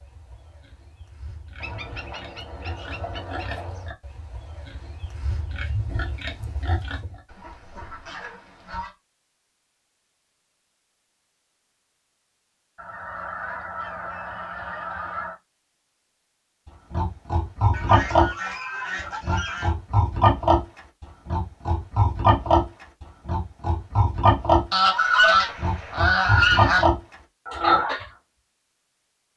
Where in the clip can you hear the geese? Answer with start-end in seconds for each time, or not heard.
1.6-3.9, 7.2-8.9, 12.8-15.3, 17.7-19.8, 24.7-26.9.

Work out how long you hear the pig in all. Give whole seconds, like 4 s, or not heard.
18 s.